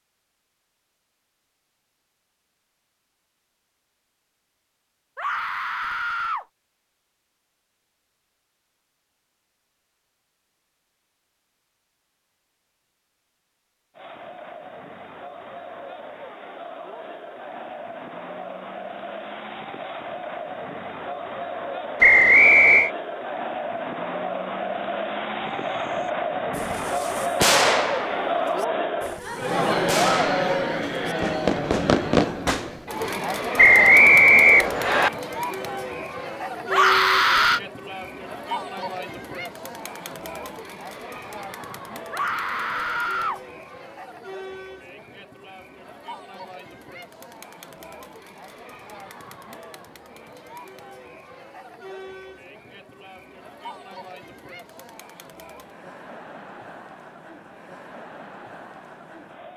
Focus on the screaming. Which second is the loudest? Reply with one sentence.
The volume of the screaming peaks at 37 seconds.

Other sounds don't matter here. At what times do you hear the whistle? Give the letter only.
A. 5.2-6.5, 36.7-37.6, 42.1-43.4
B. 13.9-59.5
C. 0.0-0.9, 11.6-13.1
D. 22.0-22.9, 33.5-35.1
D.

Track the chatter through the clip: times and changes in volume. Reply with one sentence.
The chatter can be heard from 13.9 to 59.5 s, getting louder then quieter.